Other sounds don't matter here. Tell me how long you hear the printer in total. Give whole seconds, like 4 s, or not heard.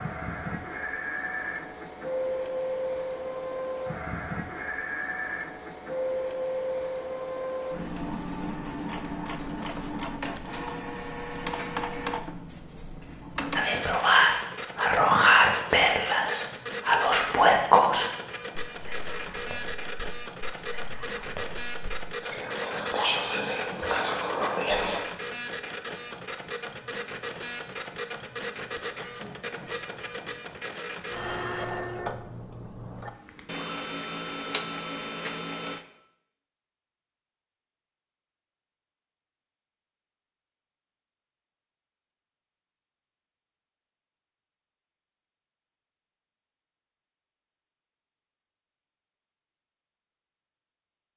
36 s.